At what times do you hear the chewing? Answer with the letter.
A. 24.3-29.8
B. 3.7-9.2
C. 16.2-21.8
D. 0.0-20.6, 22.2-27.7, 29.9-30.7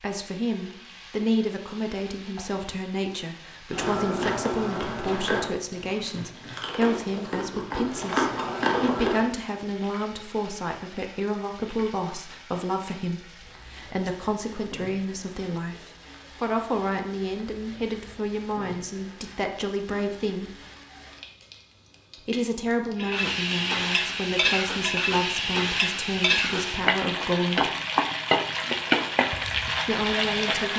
B.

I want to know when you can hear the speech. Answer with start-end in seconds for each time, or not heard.
0.0-20.6, 22.2-27.7, 29.9-30.7.